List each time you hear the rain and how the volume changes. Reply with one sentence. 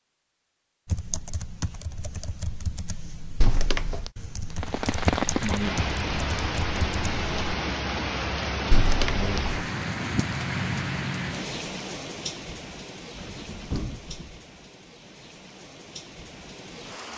You can hear the rain from 4.5 to 17.1 s, getting quieter.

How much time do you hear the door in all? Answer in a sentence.
You can hear the door for 3 seconds altogether.